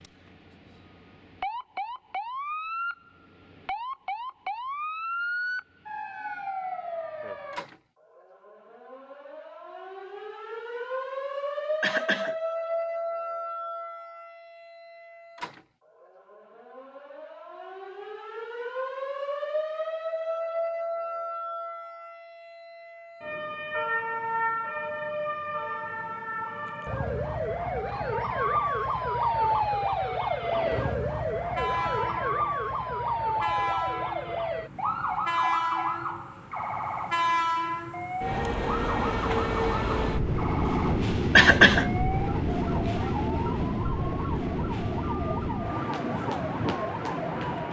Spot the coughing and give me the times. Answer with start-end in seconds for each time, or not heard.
11.8-12.3, 41.4-41.9.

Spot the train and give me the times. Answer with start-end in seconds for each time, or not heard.
30.4-47.6.